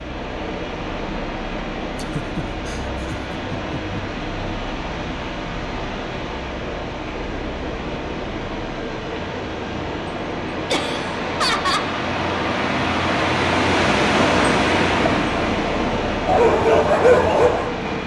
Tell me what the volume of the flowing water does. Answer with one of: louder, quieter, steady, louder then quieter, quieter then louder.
louder.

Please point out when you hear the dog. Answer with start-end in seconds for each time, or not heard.
16.2-17.9.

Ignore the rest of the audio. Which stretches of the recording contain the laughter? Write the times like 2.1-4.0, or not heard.
1.9-4.2, 10.7-11.9.